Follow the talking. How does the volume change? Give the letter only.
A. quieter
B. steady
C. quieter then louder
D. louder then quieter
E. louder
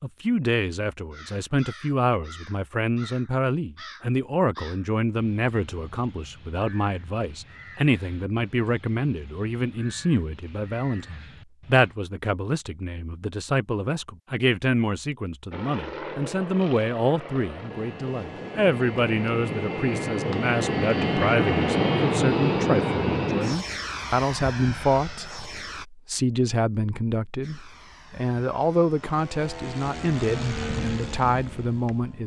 B.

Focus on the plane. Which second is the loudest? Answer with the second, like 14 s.
22 s.